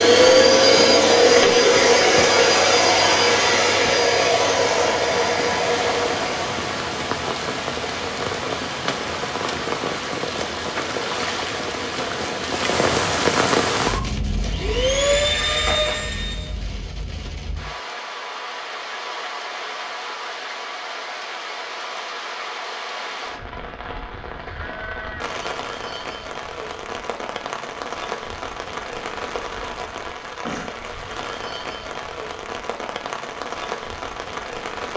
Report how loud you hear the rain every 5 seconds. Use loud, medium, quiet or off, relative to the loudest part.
medium, loud, loud, medium, medium, medium, medium.